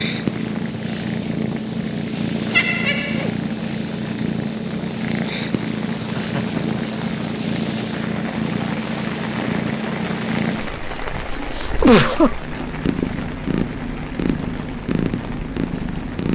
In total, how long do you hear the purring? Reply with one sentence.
The purring can be heard for 16 seconds in total.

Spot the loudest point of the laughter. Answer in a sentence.
The loudest moment of the laughter is at 12 seconds.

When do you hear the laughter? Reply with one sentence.
You can hear the laughter from 2.5 to 3.2 s, from 6.0 to 6.6 s and from 11.8 to 12.3 s.